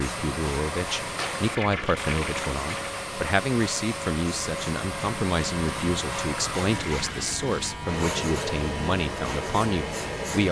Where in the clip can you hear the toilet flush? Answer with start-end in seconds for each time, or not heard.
1.1-3.0, 6.7-7.8.